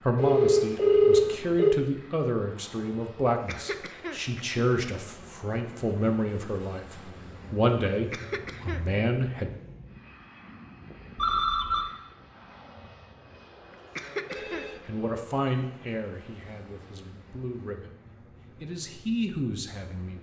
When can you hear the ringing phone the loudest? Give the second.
1 s.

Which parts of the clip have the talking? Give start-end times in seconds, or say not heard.
0.1-9.5, 14.8-17.9, 18.6-20.1.